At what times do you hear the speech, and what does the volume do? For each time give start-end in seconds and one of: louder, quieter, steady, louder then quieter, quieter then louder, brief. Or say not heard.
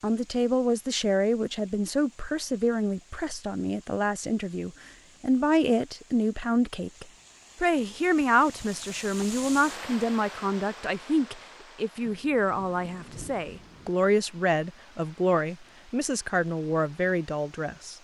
0.0-17.9 steady.